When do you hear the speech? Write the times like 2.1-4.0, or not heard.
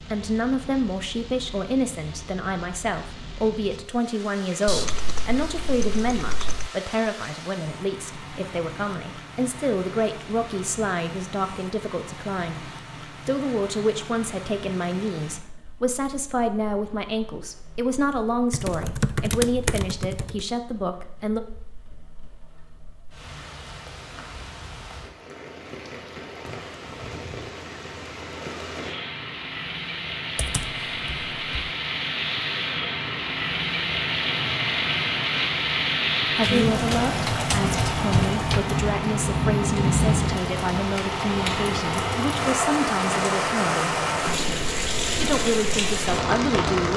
0.0-21.4, 36.4-46.9.